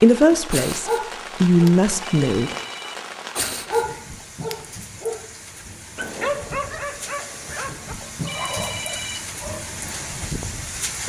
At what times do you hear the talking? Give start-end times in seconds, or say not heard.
0.0-2.5.